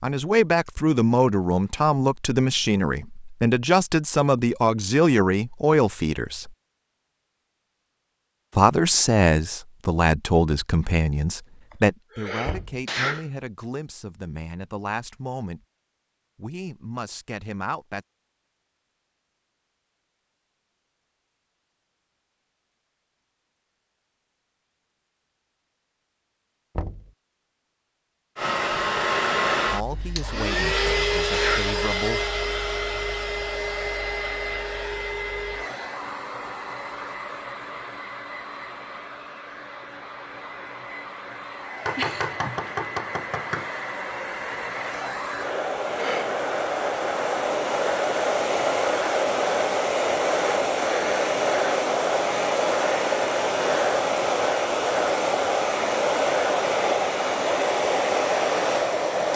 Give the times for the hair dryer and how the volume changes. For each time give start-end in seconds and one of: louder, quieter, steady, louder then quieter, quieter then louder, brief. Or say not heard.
28.4-59.3 quieter then louder.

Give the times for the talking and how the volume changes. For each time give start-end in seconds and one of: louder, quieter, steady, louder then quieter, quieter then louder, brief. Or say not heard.
0.0-6.5 steady
8.6-15.6 quieter
16.4-18.1 brief
29.7-32.2 brief.